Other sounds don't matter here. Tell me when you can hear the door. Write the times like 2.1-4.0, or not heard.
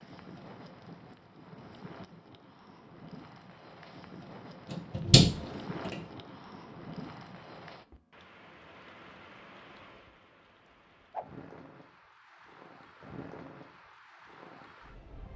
4.7-6.0.